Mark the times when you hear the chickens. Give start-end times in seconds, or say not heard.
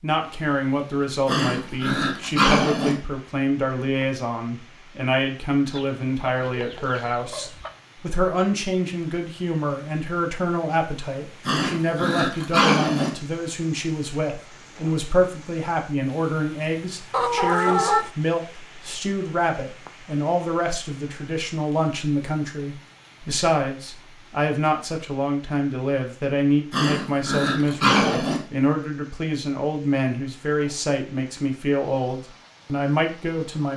5.7-7.8, 17.1-18.1.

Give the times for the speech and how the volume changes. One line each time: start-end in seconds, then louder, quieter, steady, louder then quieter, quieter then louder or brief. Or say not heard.
0.0-33.7 steady.